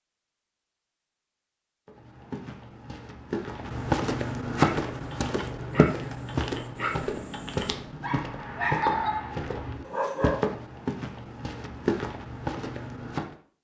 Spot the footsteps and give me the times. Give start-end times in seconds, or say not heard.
1.9-13.3.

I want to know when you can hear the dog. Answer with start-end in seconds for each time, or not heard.
4.5-10.4.